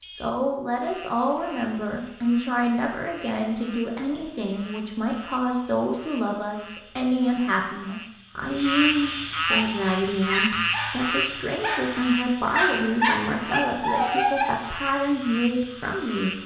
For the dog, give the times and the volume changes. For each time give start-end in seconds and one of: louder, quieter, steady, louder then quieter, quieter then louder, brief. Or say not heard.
9.4-14.7 louder.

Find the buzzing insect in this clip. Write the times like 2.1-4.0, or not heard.
not heard.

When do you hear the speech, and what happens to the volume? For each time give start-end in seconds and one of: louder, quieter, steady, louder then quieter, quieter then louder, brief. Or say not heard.
0.1-16.4 steady.